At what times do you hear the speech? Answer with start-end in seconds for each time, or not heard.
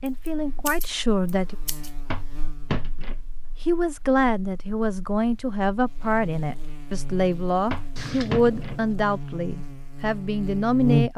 0.0-1.6, 3.6-11.1.